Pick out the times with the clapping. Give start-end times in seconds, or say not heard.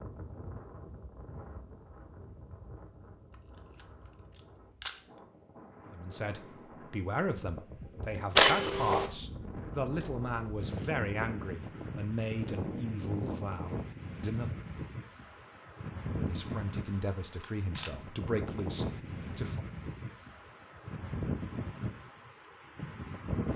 not heard.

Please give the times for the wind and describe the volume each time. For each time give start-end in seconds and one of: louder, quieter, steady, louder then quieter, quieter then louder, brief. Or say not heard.
0.0-23.5 louder.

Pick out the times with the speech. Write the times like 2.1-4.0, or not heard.
5.9-14.6, 16.1-19.6.